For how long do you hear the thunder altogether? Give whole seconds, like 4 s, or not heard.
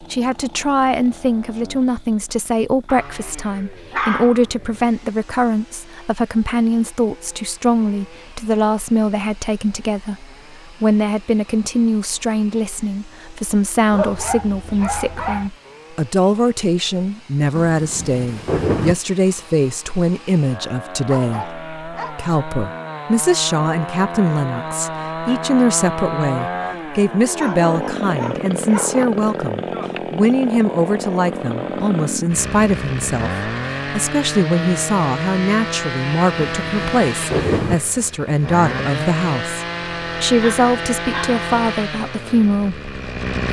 3 s.